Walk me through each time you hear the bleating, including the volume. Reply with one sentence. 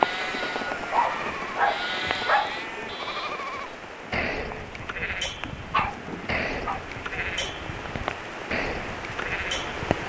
The bleating can be heard from 0.0 to 10.0 s, at a steady volume.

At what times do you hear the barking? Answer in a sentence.
The barking can be heard from 0.7 to 2.6 s and from 5.5 to 6.8 s.